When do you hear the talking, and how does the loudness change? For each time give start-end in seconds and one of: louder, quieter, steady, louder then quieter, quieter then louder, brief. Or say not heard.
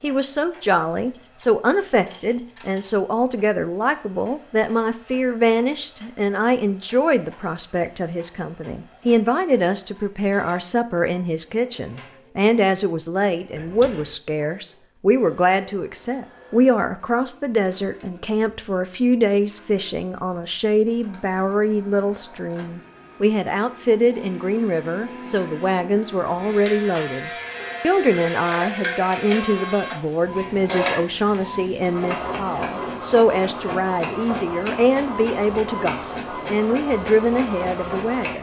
0.0-38.3 steady.